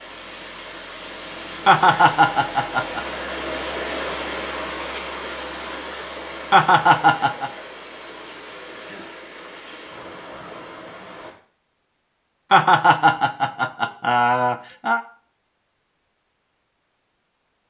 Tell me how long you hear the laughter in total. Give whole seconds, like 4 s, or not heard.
5 s.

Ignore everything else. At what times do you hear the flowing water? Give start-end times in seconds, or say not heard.
0.0-11.3.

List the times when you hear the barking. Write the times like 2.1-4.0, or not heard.
not heard.